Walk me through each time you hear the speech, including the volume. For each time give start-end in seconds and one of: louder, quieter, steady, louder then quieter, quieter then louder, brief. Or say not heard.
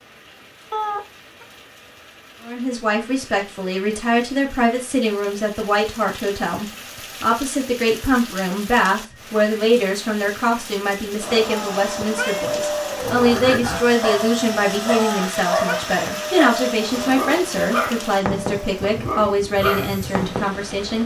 2.4-21.0 steady.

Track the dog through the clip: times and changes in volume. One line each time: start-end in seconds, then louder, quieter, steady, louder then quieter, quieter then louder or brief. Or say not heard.
13.0-20.6 steady.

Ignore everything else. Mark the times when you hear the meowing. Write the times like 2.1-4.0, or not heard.
0.7-1.4, 11.5-12.4, 14.9-15.8.